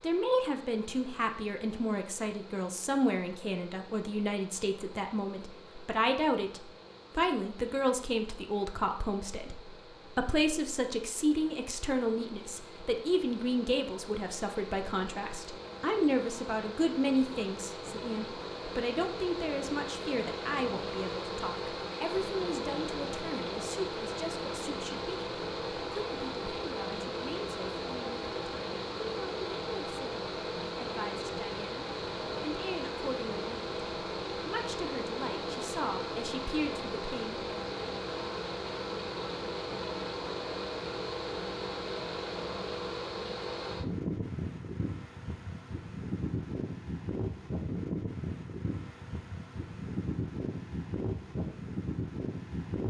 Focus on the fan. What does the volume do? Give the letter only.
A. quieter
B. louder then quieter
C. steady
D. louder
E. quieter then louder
D.